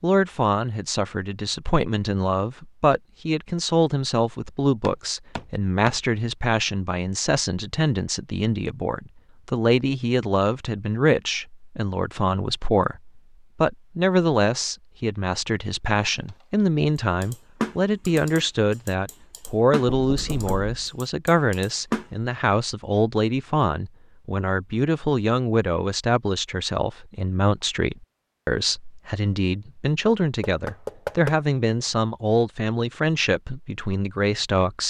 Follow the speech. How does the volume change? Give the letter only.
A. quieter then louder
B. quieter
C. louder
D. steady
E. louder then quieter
D.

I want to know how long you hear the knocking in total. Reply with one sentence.
You can hear the knocking for 3 seconds altogether.